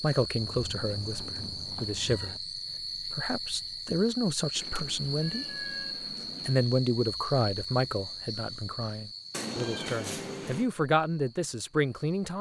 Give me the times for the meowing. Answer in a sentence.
The meowing can be heard from 0.3 to 2.4 s, from 4.5 to 6.7 s and from 9.3 to 10.7 s.